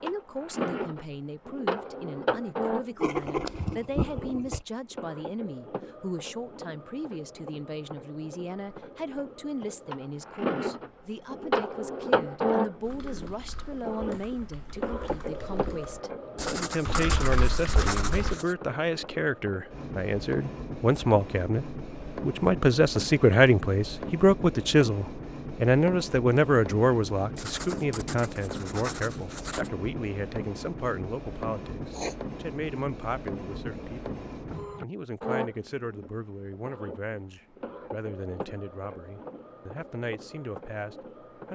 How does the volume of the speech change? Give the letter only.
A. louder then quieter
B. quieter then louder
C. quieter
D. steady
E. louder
A.